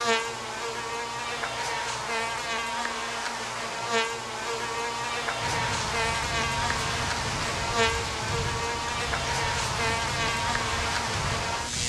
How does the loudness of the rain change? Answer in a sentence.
The volume of the rain stays about the same.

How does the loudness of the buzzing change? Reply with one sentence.
The volume of the buzzing stays about the same.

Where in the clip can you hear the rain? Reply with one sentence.
You can hear the rain from 5.4 to 11.8 s.